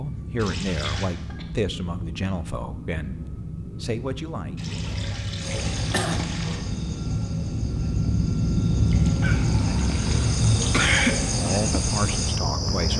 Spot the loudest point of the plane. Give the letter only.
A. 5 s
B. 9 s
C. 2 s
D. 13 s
B.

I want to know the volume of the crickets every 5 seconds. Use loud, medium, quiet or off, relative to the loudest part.
off, medium, loud.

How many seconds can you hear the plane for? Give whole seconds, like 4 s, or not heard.
13 s.